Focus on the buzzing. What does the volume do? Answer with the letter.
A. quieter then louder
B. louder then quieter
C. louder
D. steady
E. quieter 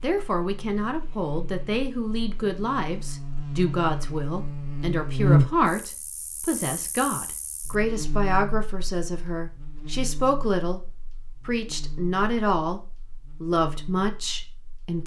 B.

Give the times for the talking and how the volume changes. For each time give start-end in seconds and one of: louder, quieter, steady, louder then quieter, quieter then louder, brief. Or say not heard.
0.0-15.0 steady.